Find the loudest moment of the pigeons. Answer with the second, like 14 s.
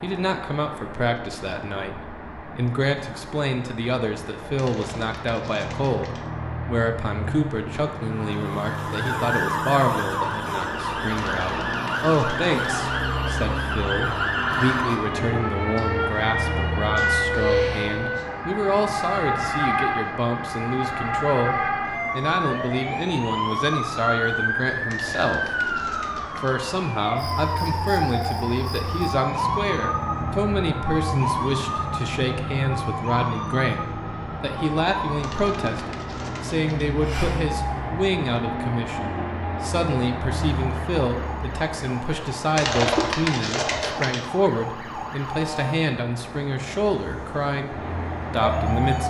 43 s.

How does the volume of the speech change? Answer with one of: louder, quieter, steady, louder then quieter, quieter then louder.
steady.